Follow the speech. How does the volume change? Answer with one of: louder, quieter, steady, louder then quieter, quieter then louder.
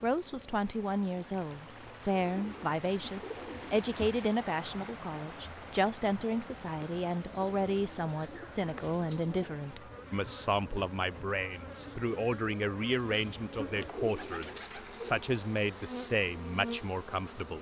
steady.